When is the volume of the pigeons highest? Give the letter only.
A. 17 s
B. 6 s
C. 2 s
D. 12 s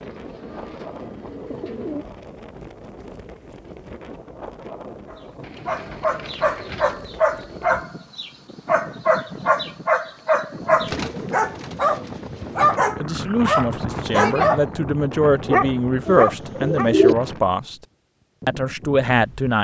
A.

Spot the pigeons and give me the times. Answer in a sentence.
The pigeons can be heard from 0.0 to 2.0 s, from 5.4 to 7.0 s, from 10.8 to 12.8 s and from 16.1 to 17.1 s.